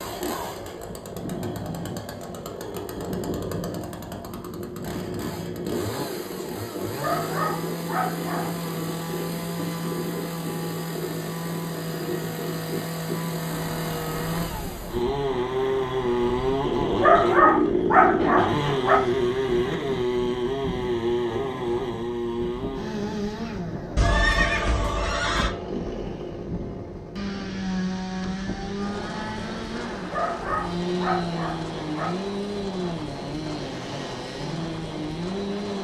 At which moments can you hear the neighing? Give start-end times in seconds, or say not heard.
23.9-25.6.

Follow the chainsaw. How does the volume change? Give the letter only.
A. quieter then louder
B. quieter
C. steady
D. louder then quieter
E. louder
D.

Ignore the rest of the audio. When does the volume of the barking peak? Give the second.
17 s.